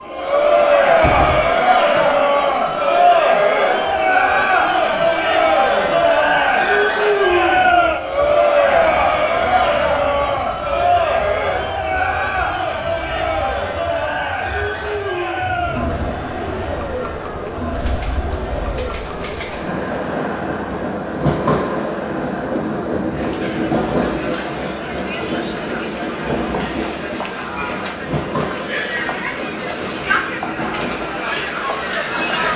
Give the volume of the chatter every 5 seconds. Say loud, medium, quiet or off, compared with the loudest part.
loud, loud, medium, medium, quiet, quiet, medium.